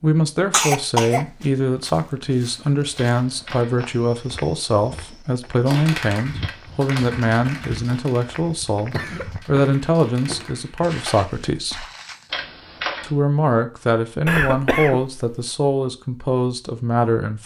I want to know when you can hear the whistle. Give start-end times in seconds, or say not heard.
not heard.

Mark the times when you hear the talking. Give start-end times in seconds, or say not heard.
0.0-11.8, 13.0-17.4.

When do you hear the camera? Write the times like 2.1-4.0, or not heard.
3.0-3.8, 6.4-7.2, 12.3-13.1.